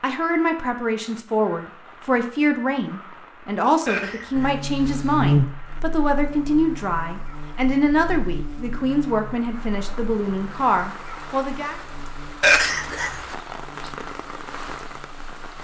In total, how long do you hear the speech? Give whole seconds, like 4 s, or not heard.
12 s.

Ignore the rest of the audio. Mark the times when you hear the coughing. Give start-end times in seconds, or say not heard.
3.9-5.2, 12.4-13.2.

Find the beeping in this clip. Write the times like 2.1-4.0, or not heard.
not heard.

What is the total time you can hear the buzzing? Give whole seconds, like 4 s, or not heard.
11 s.